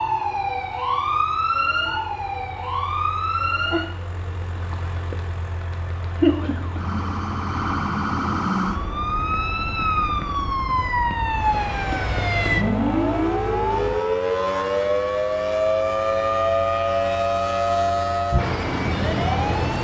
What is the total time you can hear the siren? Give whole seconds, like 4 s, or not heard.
20 s.